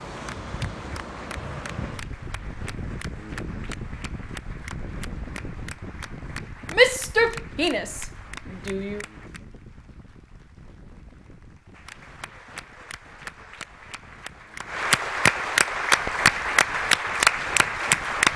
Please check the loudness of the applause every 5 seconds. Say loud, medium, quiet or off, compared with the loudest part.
quiet, quiet, quiet, loud.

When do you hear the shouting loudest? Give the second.
7 s.